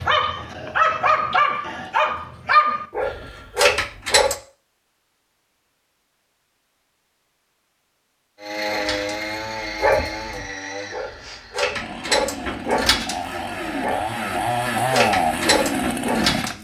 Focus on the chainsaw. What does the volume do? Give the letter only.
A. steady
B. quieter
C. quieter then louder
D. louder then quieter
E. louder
C.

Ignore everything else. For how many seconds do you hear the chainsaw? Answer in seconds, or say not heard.
8 s.